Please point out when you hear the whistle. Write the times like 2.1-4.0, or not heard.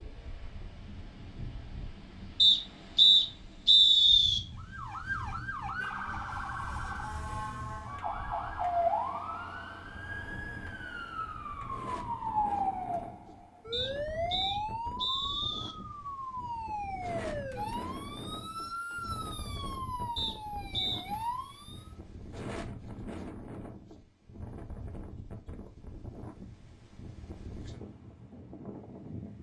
2.4-4.4, 13.7-15.8, 20.1-21.0.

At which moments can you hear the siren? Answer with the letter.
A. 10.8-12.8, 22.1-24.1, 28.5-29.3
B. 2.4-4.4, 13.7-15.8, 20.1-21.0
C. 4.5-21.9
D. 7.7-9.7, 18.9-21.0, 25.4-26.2
C.